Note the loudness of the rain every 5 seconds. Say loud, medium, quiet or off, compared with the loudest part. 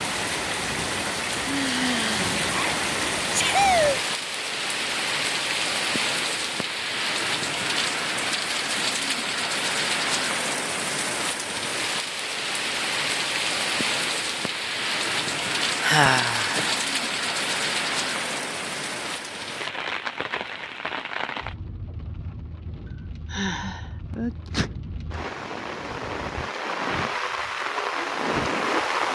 loud, loud, loud, loud, medium, loud.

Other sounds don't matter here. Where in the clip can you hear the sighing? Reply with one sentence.
The sighing can be heard from 1.4 to 2.3 s, from 15.8 to 16.8 s and from 23.3 to 23.9 s.